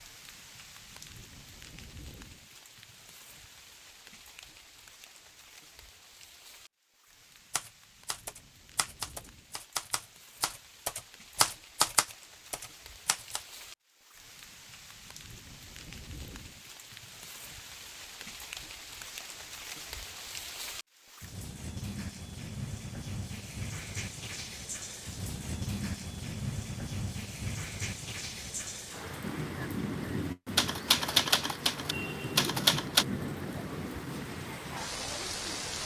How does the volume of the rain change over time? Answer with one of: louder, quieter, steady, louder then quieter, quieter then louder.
louder.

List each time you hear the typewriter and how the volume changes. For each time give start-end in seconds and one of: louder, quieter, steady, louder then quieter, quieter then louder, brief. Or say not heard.
7.5-13.4 louder then quieter
30.6-33.0 brief.